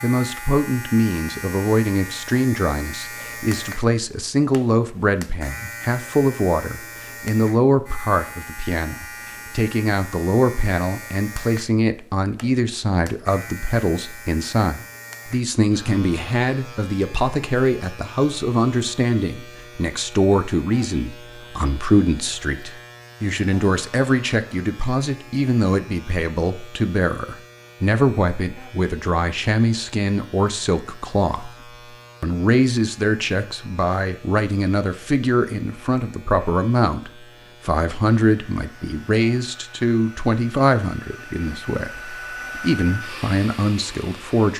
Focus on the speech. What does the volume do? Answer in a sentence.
The loudness of the speech stays about the same.